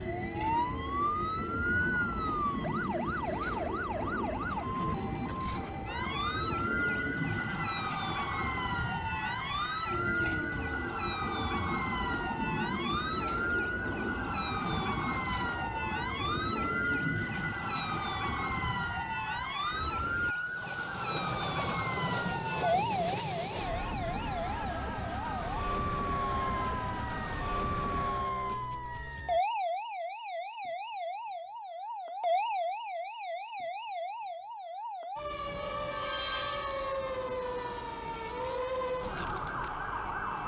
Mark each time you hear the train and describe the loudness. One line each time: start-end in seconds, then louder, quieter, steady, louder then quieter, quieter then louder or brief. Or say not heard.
0.0-28.4 steady.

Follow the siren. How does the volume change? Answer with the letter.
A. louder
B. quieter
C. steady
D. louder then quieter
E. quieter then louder
C.